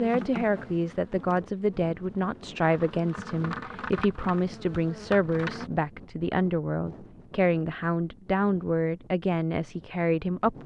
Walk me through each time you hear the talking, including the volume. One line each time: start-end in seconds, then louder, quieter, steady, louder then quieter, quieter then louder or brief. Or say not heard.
0.0-10.6 steady.